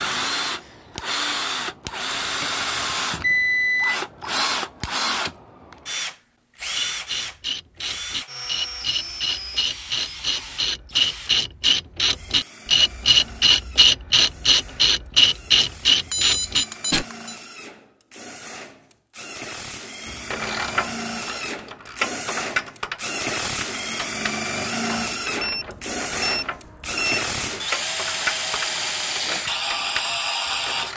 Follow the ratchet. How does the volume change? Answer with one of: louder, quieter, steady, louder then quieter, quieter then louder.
louder then quieter.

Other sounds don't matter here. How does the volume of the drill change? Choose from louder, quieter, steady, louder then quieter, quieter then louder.
quieter then louder.